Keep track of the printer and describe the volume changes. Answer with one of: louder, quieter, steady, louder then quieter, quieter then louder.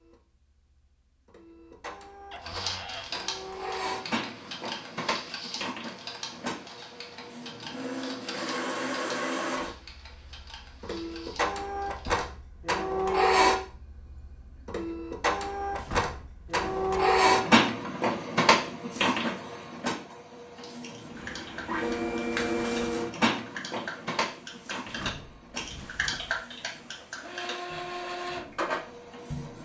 louder then quieter.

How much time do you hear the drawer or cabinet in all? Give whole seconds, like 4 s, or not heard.
4 s.